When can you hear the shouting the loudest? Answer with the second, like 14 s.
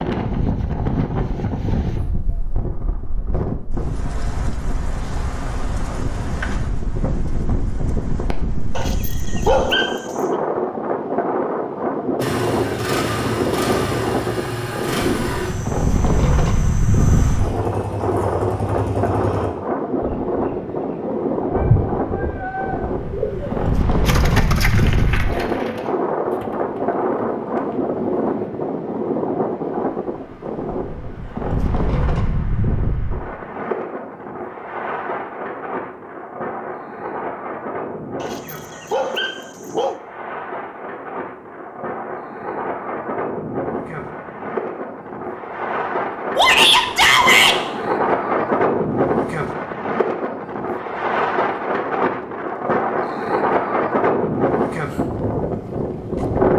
47 s.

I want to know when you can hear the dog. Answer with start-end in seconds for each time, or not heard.
8.7-10.4, 38.1-40.0.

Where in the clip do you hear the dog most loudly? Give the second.
10 s.